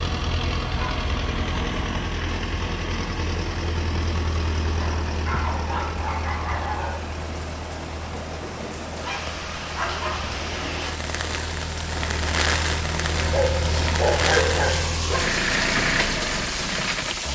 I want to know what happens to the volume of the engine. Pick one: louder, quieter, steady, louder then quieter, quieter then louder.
quieter then louder.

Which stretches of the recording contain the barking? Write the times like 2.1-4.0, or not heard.
0.0-2.0, 4.8-7.1, 9.0-10.3, 13.2-15.2.